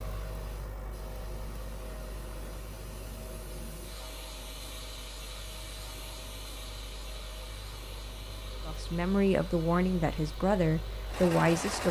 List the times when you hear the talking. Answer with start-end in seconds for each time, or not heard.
8.7-11.8.